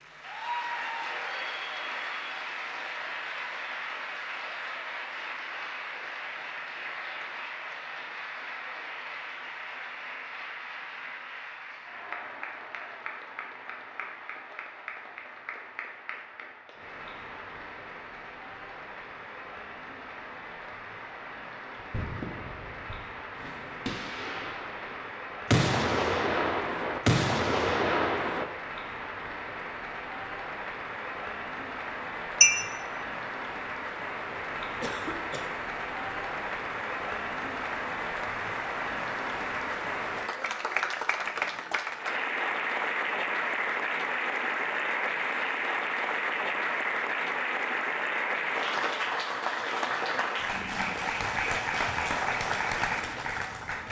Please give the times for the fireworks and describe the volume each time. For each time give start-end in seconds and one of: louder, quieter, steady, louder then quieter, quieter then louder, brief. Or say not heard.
21.8-28.4 louder.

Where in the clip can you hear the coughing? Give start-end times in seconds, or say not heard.
34.8-35.5.